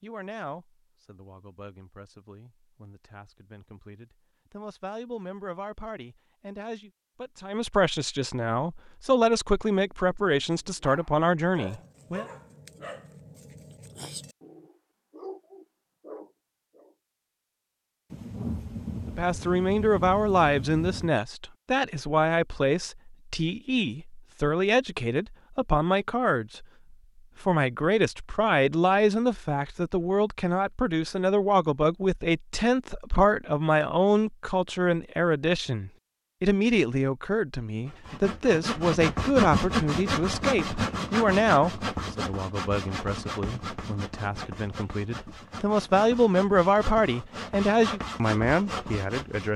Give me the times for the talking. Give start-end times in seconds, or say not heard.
0.0-12.2, 19.1-26.6, 27.4-49.5.